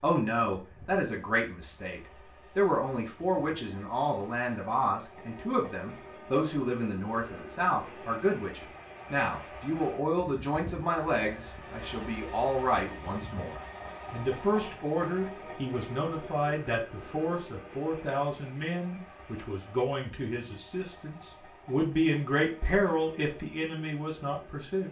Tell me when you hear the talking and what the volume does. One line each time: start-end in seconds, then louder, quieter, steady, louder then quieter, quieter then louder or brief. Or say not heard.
0.0-24.8 steady.